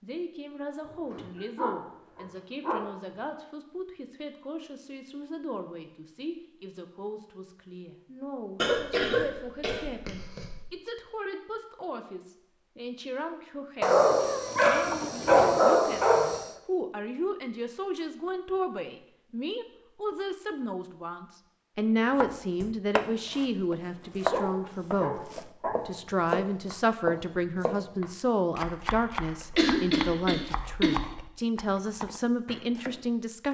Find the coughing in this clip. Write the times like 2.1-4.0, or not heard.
8.6-10.6, 29.6-30.9.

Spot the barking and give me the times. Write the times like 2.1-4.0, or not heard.
0.8-2.9, 13.8-16.5, 24.0-25.9.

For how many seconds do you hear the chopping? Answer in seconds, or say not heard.
11 s.